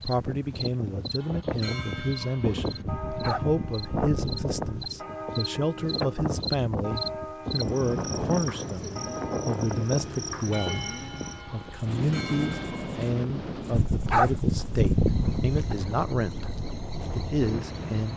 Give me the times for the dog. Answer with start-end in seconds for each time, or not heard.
2.9-4.8, 13.7-15.8.